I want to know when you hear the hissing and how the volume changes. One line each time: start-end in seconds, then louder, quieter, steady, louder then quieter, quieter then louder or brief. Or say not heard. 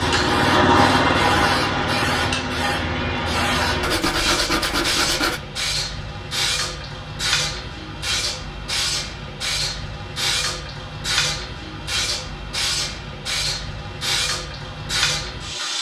0.0-15.7 steady.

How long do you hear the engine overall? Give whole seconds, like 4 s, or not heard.
4 s.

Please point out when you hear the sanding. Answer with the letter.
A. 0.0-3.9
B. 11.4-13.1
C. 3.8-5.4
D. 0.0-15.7
C.